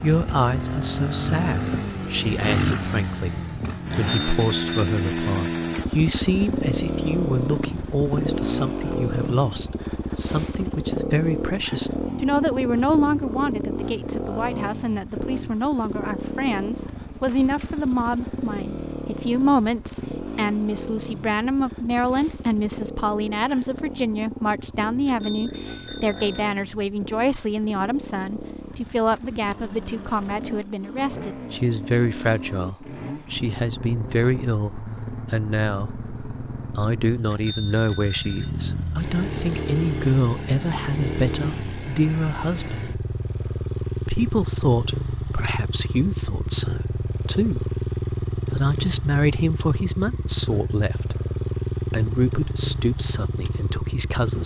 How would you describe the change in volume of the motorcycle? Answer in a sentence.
The volume of the motorcycle goes down, then up.